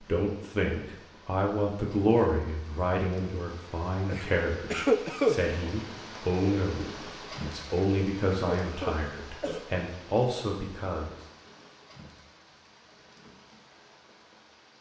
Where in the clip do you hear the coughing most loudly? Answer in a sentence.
The volume of the coughing peaks at 5 seconds.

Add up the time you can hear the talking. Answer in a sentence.
You can hear the talking for 11 seconds altogether.